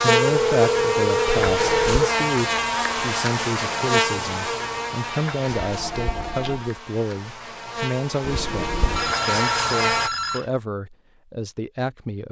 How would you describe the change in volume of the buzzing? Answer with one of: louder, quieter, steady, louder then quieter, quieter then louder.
quieter then louder.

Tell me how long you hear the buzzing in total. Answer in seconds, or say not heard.
10 s.